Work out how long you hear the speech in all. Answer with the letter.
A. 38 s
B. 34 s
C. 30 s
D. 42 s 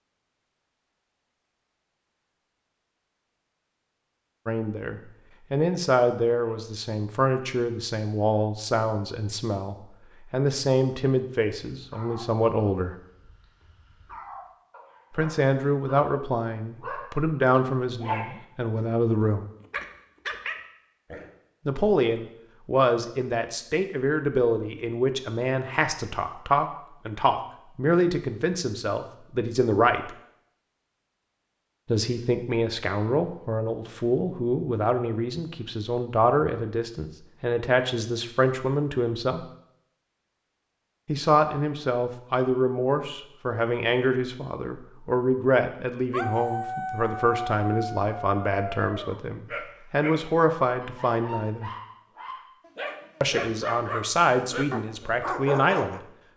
D.